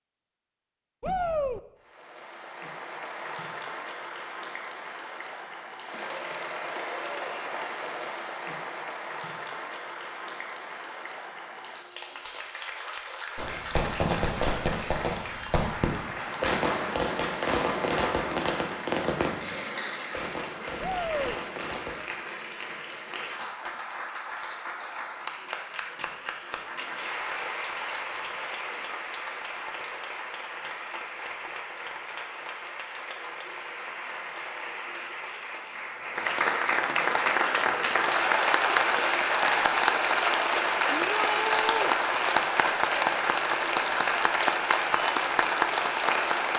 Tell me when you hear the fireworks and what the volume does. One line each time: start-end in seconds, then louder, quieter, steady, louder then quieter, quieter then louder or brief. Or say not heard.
13.3-22.0 quieter.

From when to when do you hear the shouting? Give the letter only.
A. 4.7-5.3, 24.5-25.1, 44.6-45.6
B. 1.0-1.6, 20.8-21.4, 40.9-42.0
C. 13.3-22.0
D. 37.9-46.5
B.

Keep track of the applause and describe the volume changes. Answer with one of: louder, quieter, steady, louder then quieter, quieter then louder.
louder.